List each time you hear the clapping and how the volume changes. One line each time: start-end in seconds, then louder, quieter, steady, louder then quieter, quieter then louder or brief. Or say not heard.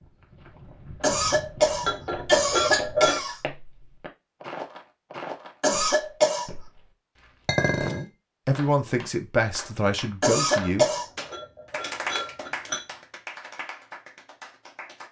8.5-15.0 louder then quieter.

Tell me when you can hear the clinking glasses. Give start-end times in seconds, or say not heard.
1.8-3.2, 7.5-8.1, 10.6-12.8.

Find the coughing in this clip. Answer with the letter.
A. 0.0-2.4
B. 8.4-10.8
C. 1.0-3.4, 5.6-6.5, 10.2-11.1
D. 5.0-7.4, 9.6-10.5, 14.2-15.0
C.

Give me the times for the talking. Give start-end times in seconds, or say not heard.
8.4-10.8.